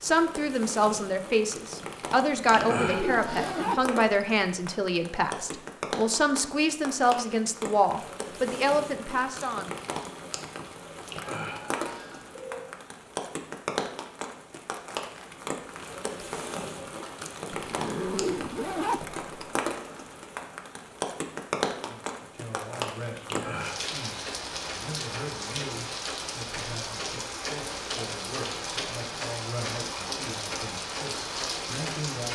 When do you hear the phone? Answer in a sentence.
The phone can be heard from 2.5 to 4.0 s, from 11.1 to 12.6 s and from 23.2 to 23.9 s.